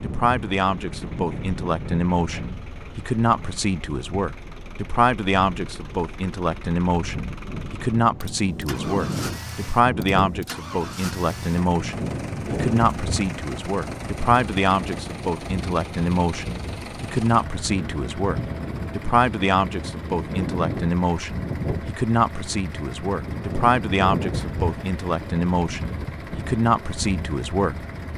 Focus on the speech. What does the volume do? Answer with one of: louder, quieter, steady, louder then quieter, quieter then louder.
steady.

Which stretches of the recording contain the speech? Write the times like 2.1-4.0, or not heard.
0.0-27.8.